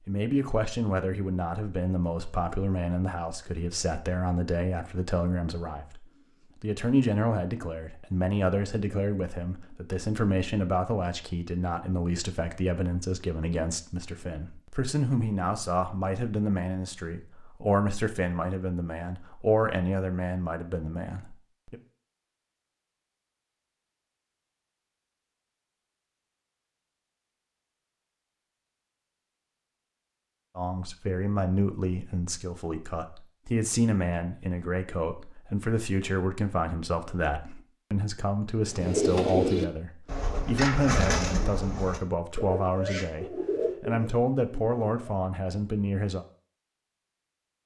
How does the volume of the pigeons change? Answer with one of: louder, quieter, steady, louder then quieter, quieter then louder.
quieter.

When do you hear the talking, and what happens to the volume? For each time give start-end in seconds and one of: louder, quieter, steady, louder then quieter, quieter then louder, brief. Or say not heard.
0.1-21.8 steady
30.6-46.2 steady.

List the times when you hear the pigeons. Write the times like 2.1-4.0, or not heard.
38.6-45.1.